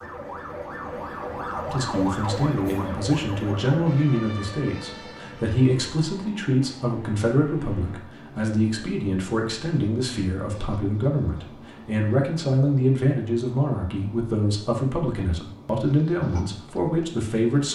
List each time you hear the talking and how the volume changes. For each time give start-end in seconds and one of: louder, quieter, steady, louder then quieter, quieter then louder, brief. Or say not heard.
1.6-17.7 steady.